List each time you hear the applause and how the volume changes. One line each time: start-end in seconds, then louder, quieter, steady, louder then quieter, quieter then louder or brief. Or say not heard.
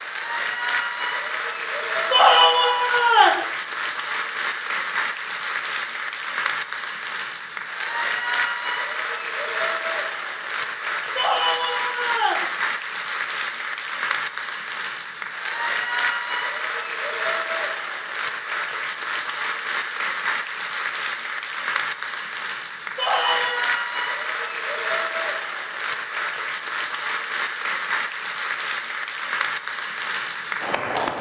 0.0-31.1 steady.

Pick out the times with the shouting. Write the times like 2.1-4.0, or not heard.
2.1-3.5, 11.2-12.5, 22.9-23.6.